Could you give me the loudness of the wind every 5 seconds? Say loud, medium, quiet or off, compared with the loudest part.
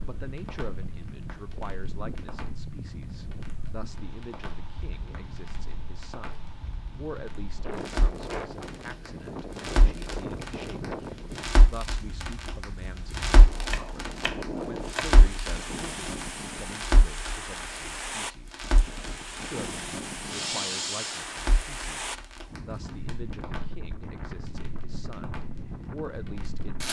medium, loud, loud, loud, loud, loud.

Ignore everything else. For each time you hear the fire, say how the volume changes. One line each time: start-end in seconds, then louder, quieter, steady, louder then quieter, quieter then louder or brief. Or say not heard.
0.2-26.8 louder then quieter.